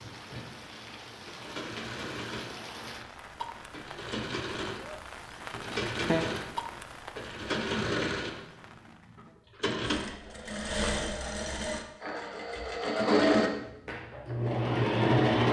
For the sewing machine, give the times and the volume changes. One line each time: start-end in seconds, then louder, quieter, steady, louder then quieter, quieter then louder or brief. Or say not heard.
0.0-15.4 louder.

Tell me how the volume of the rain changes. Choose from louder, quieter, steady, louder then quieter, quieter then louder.
louder then quieter.